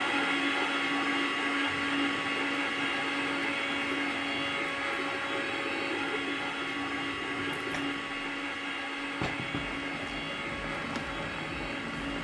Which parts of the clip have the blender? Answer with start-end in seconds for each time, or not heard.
0.0-12.2.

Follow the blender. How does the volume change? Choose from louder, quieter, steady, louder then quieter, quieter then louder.
quieter.